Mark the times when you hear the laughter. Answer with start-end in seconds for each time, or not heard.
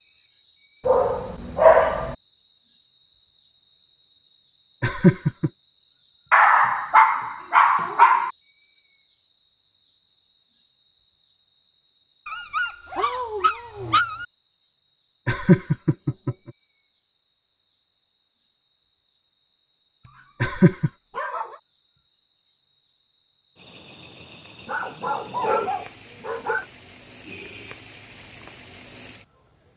4.8-5.5, 15.2-16.4, 20.4-20.9.